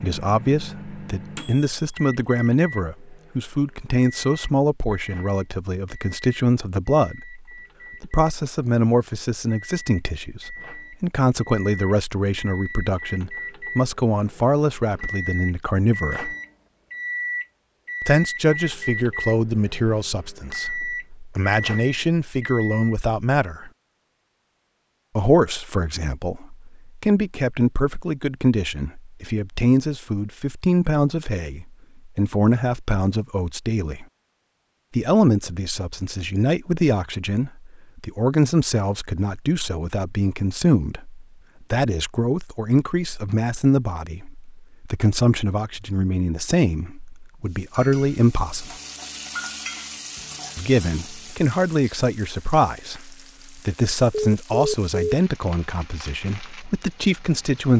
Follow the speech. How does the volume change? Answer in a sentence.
The volume of the speech stays about the same.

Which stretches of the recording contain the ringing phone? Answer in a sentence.
You can hear the ringing phone from 54.1 to 55.1 s.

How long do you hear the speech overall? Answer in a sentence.
The speech can be heard for 51 seconds in total.